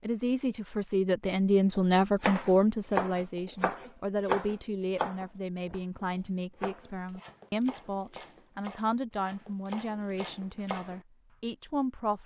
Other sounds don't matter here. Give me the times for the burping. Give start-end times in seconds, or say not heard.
not heard.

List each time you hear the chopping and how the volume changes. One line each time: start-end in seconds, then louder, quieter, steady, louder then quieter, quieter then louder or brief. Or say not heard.
1.8-11.0 quieter.